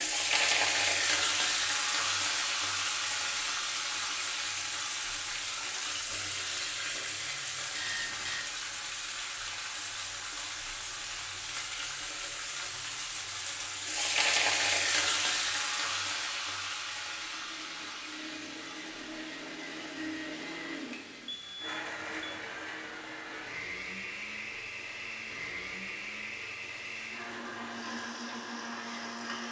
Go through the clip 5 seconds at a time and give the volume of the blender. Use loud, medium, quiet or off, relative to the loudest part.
off, off, off, medium, loud, loud.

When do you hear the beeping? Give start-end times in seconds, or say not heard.
7.7-8.5, 21.2-22.3.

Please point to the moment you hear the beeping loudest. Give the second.
8 s.